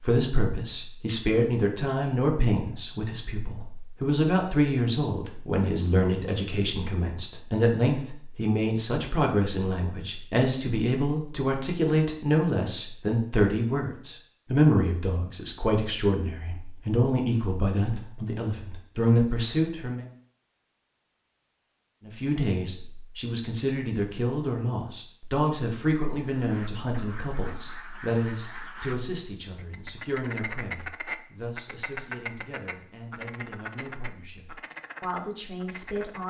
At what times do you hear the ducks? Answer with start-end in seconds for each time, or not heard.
26.4-28.9, 29.6-36.2.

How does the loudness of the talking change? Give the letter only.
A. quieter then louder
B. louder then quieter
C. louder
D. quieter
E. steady
D.